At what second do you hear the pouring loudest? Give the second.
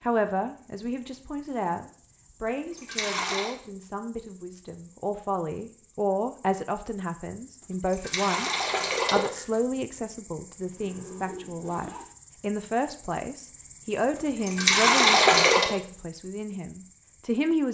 15 s.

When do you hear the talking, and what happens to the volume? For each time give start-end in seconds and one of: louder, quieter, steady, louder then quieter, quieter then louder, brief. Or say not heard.
0.0-17.6 steady.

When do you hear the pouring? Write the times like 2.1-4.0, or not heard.
2.5-3.5, 7.6-9.6, 14.2-15.8.